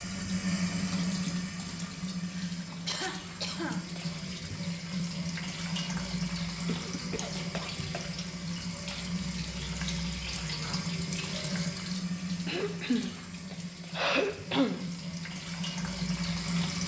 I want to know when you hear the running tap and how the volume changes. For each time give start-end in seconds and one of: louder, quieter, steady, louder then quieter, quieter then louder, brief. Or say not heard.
0.0-16.8 steady.